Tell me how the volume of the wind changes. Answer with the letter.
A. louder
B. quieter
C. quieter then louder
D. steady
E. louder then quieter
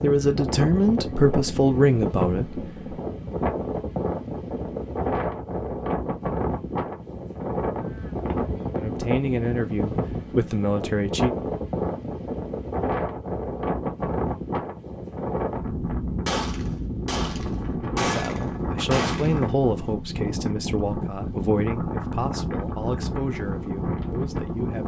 D.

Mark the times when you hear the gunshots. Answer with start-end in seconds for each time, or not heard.
16.2-19.9.